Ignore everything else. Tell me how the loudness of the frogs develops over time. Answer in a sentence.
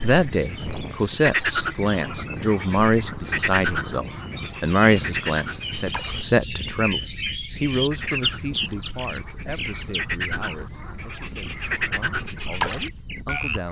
The loudness of the frogs goes down, then up.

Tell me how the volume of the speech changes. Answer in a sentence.
The loudness of the speech goes down.